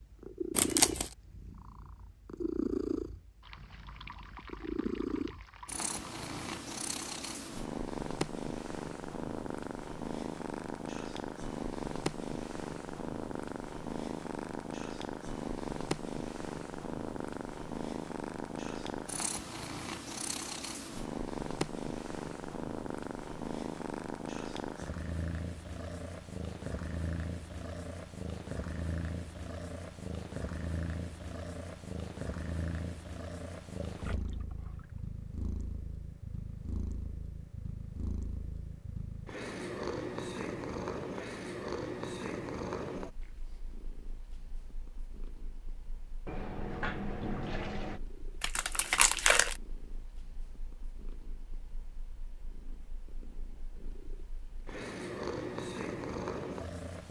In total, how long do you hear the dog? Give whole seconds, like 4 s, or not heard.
not heard.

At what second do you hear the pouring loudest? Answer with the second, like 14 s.
47 s.